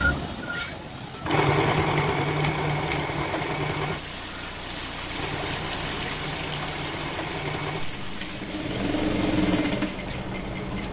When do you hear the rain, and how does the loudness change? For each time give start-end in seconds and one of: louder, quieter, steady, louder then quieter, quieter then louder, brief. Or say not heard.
0.1-10.8 louder then quieter.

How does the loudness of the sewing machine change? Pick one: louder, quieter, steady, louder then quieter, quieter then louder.
quieter then louder.